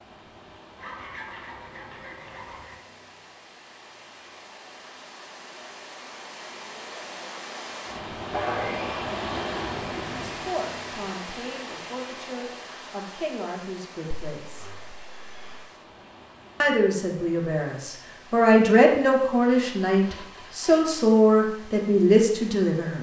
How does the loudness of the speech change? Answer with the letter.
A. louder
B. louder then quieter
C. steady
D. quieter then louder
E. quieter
A.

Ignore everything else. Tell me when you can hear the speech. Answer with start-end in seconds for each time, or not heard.
10.1-14.7, 16.6-22.9.